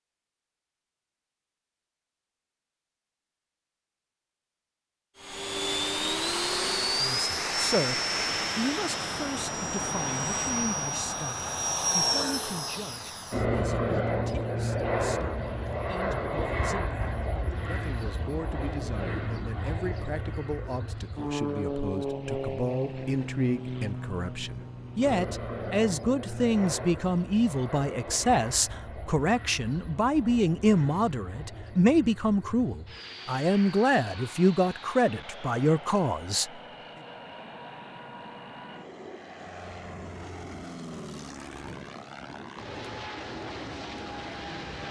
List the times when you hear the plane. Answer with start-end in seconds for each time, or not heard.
5.2-44.8.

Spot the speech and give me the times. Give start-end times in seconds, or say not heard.
7.0-36.5.